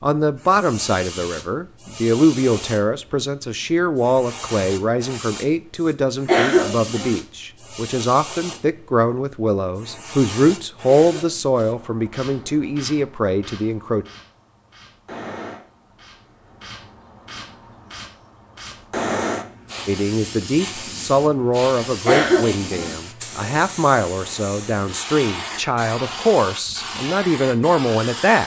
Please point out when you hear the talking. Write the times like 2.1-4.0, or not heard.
0.0-14.1, 19.9-28.4.